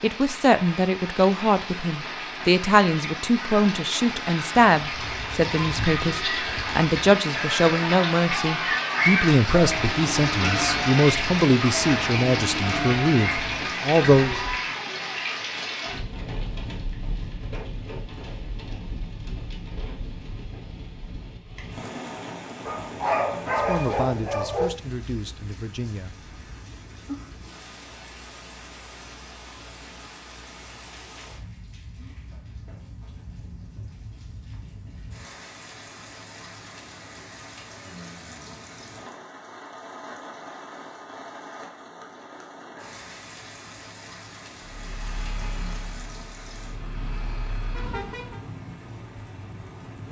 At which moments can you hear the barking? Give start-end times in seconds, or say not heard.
22.6-24.6.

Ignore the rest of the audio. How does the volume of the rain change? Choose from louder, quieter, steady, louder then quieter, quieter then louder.
quieter.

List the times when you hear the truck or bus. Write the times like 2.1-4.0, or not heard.
44.6-48.5.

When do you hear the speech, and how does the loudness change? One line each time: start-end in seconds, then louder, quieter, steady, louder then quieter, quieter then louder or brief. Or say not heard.
0.0-14.4 steady
23.6-26.3 brief.